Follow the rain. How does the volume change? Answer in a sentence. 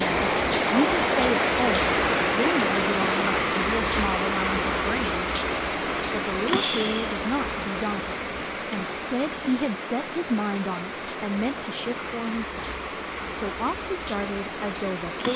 The loudness of the rain goes down.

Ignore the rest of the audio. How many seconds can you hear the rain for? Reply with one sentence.
You can hear the rain for 15 seconds altogether.